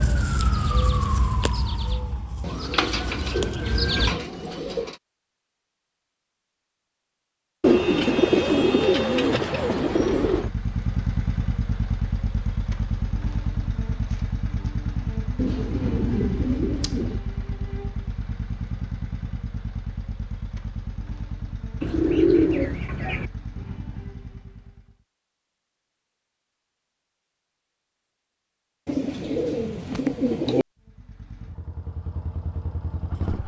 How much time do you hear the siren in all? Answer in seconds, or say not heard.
4 s.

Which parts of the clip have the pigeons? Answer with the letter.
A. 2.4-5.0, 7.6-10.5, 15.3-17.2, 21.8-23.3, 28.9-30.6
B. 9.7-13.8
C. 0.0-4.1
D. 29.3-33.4
A.